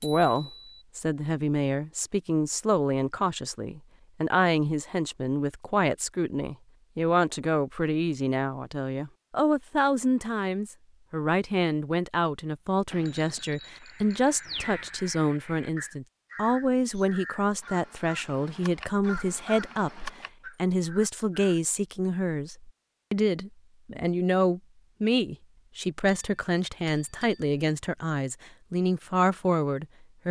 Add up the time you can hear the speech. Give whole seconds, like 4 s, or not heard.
30 s.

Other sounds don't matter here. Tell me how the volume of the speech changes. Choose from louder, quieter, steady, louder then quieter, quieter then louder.
steady.